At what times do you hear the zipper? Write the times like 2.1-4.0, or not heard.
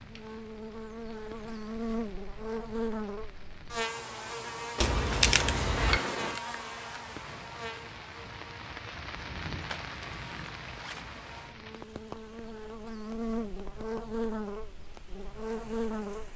4.8-6.0, 9.6-11.1.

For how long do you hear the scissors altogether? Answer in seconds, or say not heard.
2 s.